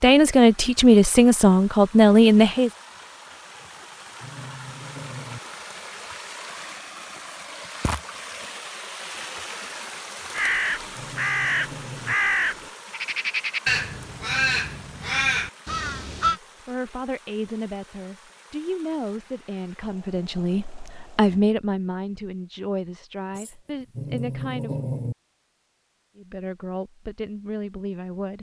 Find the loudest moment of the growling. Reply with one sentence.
The volume of the growling peaks at 25 seconds.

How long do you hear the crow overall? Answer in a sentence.
The crow can be heard for 6 seconds in total.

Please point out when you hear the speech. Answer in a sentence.
You can hear the speech from 0.0 to 2.7 s, from 16.1 to 24.9 s and from 26.1 to 28.3 s.